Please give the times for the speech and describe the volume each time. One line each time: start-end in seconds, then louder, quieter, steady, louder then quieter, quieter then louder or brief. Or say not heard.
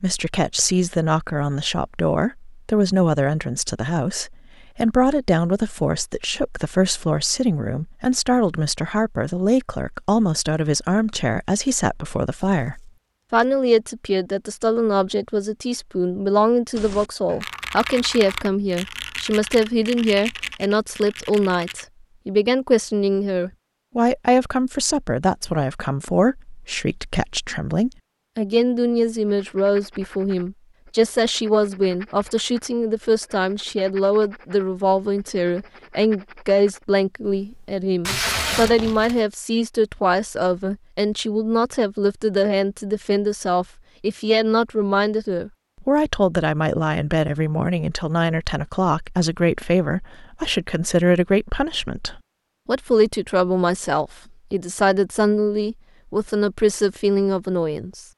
0.0-58.0 steady.